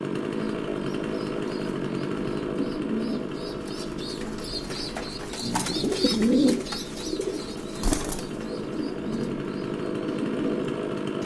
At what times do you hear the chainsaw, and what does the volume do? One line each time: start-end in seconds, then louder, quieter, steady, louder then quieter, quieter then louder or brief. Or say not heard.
0.0-11.2 quieter then louder.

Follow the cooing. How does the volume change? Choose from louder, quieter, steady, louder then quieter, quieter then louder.
louder then quieter.